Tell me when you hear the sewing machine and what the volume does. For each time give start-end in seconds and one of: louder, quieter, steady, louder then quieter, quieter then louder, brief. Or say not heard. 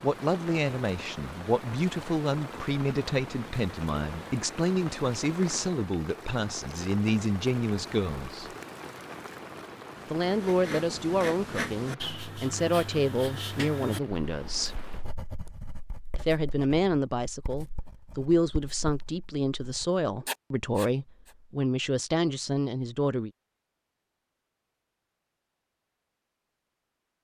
not heard.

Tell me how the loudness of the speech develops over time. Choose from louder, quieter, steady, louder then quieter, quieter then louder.
steady.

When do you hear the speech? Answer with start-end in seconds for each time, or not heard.
0.0-8.5, 10.1-14.8, 16.1-23.3.